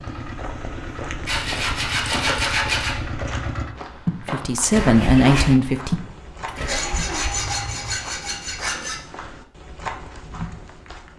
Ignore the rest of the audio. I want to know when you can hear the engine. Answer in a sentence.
You can hear the engine from 0.0 to 8.0 s.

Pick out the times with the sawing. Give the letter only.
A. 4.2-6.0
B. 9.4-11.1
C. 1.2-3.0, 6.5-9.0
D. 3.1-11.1
C.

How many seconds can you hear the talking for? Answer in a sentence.
You can hear the talking for 2 seconds altogether.